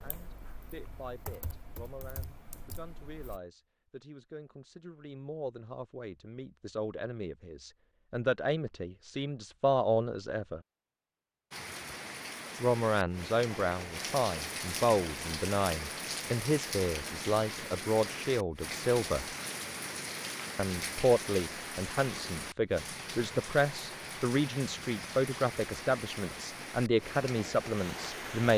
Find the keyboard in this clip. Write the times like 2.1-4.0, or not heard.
0.0-3.4.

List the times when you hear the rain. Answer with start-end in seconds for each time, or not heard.
11.5-28.5.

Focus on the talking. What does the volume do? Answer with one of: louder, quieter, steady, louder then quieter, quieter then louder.
louder.